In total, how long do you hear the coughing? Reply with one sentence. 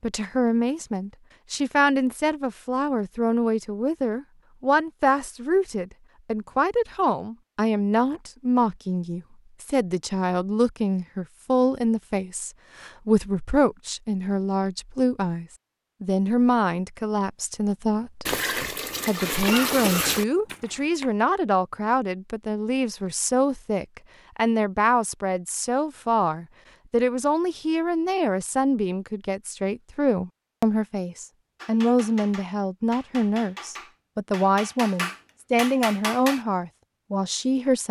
The coughing can be heard for 2 seconds in total.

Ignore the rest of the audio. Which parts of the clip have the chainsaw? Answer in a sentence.
The chainsaw can't be heard in this clip.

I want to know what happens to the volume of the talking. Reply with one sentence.
The loudness of the talking stays about the same.